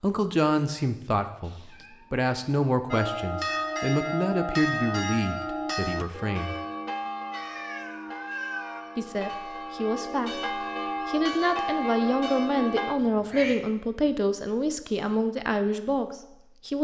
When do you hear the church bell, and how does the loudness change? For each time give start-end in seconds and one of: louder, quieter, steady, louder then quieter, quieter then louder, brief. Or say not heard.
2.9-12.9 quieter then louder.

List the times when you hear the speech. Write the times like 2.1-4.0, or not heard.
0.0-6.5, 8.9-16.7.